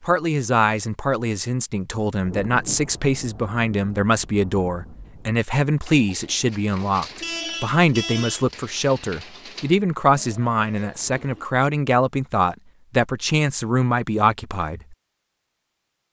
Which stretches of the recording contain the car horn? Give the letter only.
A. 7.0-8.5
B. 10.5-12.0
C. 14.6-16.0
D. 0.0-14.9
A.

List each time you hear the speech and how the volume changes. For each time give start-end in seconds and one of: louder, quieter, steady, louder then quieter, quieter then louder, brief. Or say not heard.
0.0-14.9 steady.